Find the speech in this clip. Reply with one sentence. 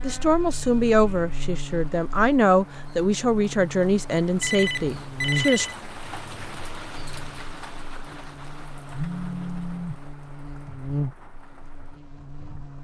The speech can be heard from 0.0 to 5.7 s.